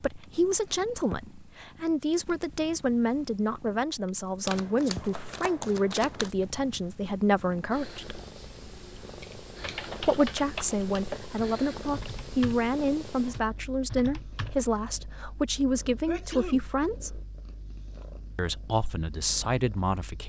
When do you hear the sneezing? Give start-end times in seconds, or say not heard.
16.1-16.7.